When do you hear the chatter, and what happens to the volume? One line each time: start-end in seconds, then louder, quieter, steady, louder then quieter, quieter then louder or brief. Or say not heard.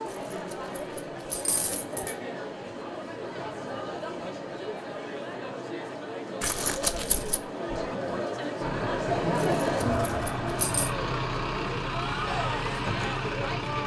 0.0-13.8 louder then quieter.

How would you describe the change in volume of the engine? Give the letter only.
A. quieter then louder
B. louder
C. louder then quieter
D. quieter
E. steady
B.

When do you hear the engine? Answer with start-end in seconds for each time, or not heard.
8.6-13.8.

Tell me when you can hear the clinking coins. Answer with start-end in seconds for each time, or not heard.
0.1-2.1, 6.4-7.4, 9.4-10.9.